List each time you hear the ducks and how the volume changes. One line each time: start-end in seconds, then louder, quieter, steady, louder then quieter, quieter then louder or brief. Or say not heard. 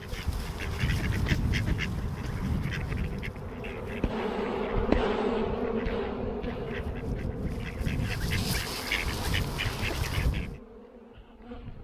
0.0-10.6 quieter then louder.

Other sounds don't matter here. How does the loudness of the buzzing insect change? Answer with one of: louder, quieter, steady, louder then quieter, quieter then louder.
louder then quieter.